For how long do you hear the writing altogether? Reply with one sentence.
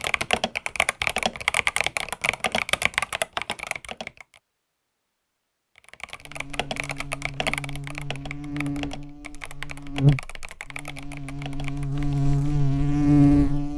You can't hear the writing here.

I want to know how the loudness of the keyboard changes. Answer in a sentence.
The loudness of the keyboard goes down.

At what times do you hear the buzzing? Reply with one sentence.
The buzzing can be heard from 6.2 to 13.7 s.